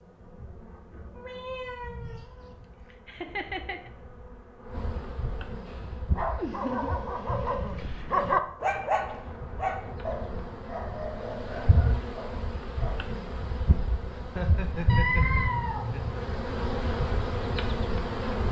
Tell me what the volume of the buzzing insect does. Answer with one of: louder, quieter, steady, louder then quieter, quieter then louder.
louder.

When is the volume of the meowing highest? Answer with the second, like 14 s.
15 s.